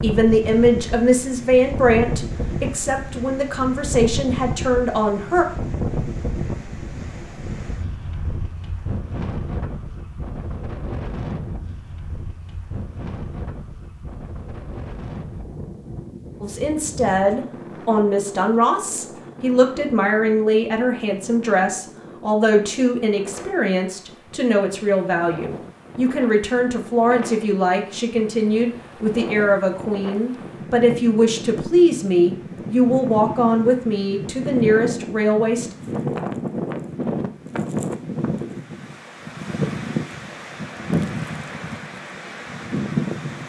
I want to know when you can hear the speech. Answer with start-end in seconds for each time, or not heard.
0.0-5.5, 16.4-35.7.